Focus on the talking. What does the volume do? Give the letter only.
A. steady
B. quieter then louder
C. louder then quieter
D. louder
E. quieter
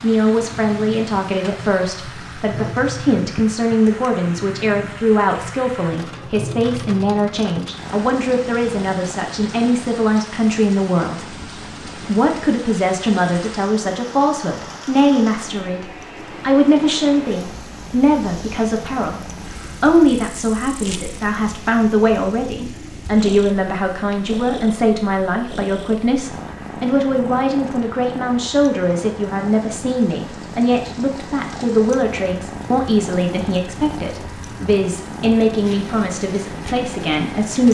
A.